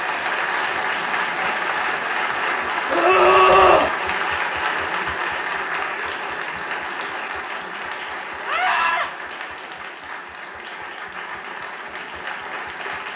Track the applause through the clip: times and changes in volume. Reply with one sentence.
The applause can be heard from 0.0 to 13.1 s, getting quieter.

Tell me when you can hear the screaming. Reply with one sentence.
The screaming can be heard from 2.9 to 3.9 s and from 8.4 to 9.1 s.